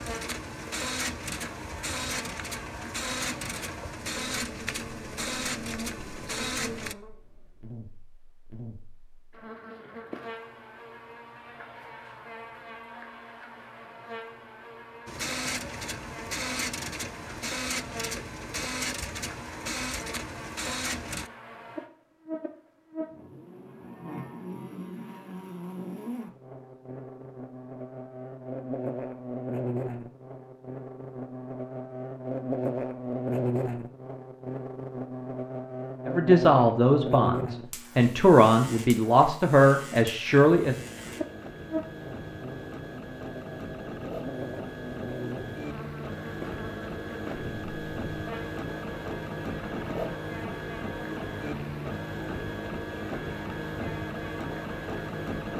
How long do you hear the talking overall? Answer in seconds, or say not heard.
5 s.